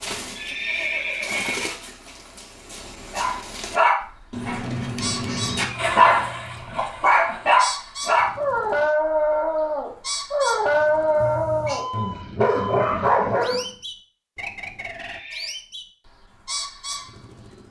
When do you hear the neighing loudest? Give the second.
1 s.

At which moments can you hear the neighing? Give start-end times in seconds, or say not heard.
0.3-1.7, 14.9-15.6.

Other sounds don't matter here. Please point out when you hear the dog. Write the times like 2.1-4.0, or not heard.
3.1-13.7.